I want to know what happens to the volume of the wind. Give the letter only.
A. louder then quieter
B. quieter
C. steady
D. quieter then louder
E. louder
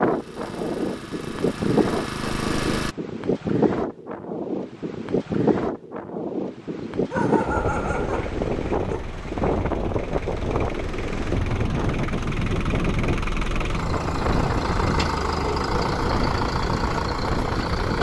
C.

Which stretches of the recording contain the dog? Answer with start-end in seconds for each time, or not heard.
6.9-9.2.